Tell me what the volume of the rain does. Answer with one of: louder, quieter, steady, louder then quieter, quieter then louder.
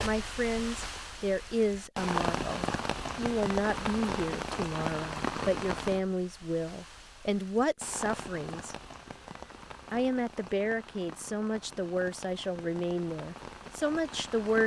quieter.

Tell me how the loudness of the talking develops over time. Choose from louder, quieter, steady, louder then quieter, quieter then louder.
steady.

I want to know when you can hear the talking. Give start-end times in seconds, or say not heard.
0.0-8.8, 9.9-14.6.